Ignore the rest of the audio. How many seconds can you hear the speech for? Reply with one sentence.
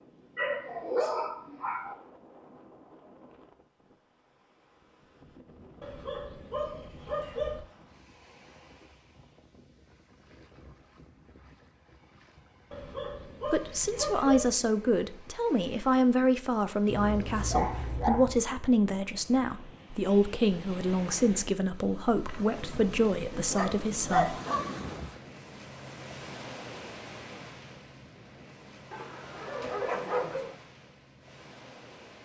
You can hear the speech for 11 seconds altogether.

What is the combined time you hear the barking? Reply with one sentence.
The barking can be heard for 11 seconds in total.